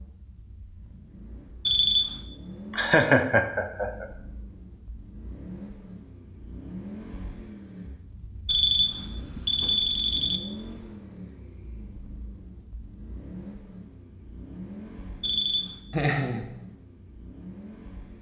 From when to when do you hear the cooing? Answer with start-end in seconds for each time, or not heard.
not heard.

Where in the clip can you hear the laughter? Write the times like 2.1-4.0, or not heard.
2.7-4.0, 15.9-16.5.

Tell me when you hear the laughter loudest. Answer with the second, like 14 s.
3 s.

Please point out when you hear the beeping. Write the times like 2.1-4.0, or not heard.
1.6-2.2, 8.4-10.4, 15.2-15.8.